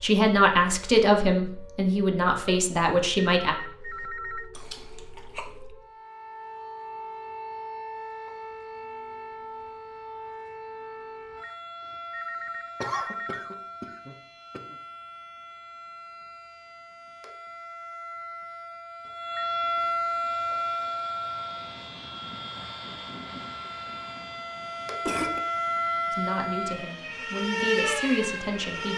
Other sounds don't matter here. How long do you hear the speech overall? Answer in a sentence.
The speech can be heard for 6 seconds in total.